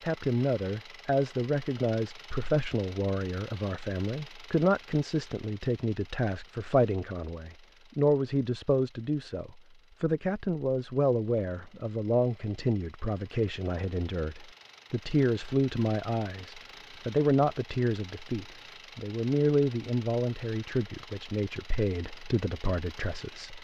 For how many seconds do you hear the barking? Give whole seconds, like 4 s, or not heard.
not heard.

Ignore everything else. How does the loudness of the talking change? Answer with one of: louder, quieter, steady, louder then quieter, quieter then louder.
steady.